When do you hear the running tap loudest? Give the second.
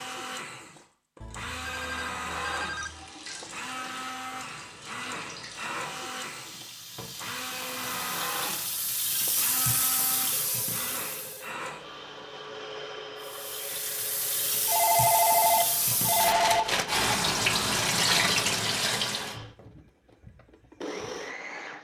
18 s.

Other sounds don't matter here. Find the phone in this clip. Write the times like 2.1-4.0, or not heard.
1.2-3.0, 10.3-12.4, 14.7-16.6.